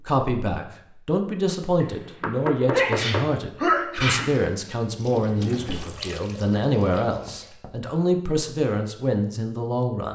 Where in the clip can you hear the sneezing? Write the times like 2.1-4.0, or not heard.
2.7-4.3.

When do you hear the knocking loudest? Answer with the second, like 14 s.
3 s.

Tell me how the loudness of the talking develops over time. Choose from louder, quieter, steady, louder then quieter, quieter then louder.
steady.